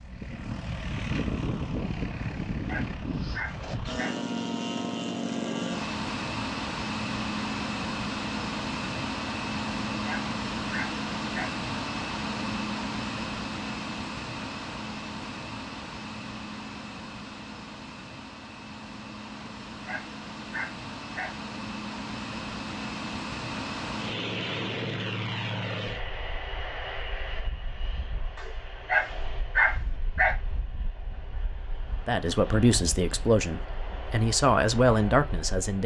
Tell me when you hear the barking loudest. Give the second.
30 s.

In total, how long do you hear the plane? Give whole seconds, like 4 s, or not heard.
36 s.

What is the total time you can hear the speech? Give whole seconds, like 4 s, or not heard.
4 s.